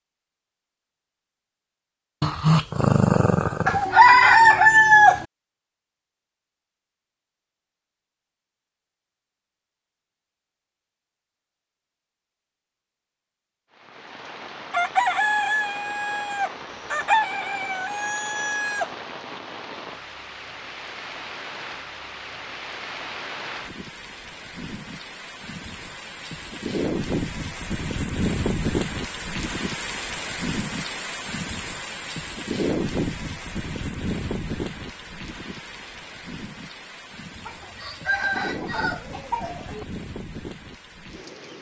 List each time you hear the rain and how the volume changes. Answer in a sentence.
You can hear the rain from 13.7 to 41.5 s, getting louder then quieter.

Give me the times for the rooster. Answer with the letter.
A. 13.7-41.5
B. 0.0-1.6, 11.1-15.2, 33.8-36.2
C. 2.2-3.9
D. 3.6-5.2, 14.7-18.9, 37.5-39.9
D.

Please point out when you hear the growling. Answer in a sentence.
You can hear the growling from 2.2 to 3.9 s.